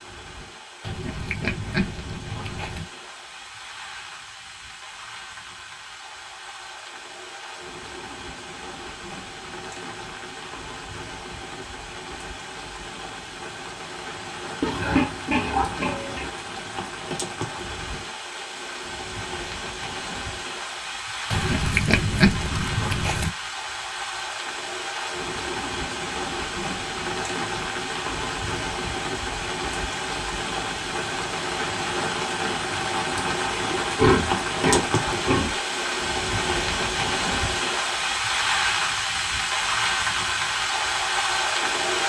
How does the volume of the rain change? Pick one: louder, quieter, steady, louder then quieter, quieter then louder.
louder.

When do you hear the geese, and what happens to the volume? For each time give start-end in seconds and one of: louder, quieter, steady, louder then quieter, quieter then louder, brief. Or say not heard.
not heard.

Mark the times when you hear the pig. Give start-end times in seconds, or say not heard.
0.8-2.9, 14.6-16.3, 21.3-23.3, 33.7-35.7.